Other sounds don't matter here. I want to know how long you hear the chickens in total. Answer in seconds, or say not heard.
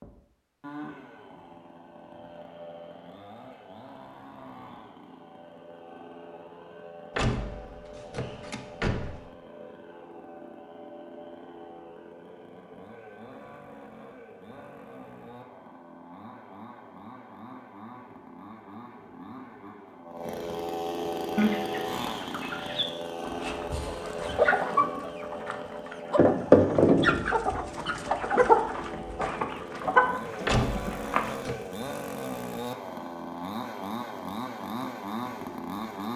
10 s.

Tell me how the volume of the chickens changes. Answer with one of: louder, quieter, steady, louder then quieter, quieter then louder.
louder then quieter.